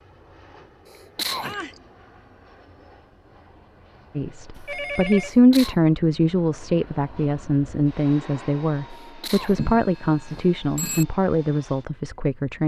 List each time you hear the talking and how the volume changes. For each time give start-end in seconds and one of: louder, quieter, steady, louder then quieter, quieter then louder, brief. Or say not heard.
4.2-12.6 quieter.